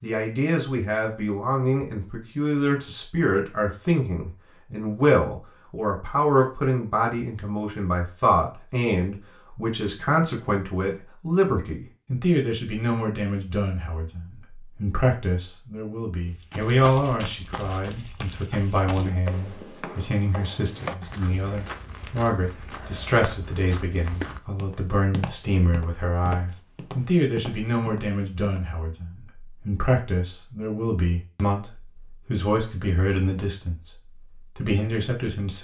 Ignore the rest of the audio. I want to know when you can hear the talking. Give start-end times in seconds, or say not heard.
0.0-35.5.